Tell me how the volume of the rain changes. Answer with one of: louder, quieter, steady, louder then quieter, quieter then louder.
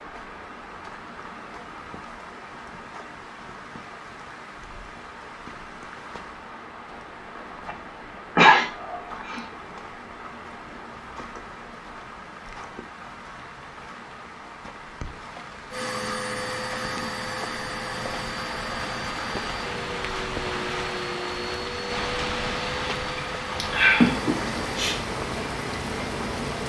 louder.